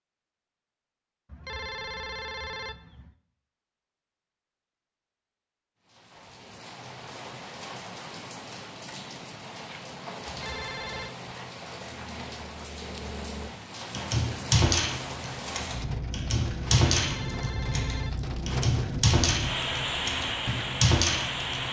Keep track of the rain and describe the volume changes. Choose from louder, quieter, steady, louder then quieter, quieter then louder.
louder.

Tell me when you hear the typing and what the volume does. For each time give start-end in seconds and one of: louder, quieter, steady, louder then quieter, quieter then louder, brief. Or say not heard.
13.9-21.6 quieter then louder.